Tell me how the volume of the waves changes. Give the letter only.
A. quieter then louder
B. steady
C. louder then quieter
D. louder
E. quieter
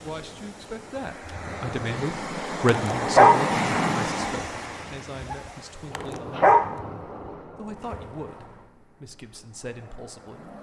C.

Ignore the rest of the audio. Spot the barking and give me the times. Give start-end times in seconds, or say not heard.
2.6-3.5, 6.0-6.8.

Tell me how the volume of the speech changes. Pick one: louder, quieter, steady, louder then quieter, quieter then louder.
louder then quieter.